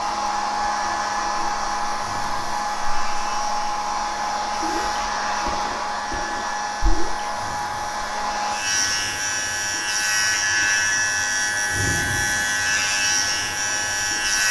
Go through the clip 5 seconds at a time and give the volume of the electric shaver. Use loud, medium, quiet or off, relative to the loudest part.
quiet, medium, loud.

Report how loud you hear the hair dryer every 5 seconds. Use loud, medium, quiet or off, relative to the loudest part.
loud, loud, medium.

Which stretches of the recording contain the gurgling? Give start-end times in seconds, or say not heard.
4.6-7.3.